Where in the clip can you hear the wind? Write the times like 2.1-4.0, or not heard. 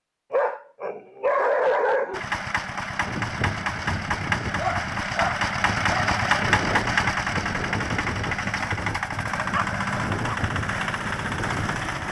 2.9-12.0.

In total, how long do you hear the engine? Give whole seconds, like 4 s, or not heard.
10 s.